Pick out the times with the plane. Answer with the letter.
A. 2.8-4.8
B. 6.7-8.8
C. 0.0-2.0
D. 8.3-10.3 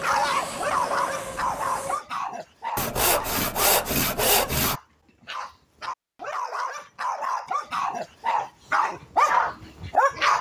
C.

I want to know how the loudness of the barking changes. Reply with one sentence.
The loudness of the barking goes down, then up.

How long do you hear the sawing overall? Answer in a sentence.
The sawing can be heard for 2 seconds in total.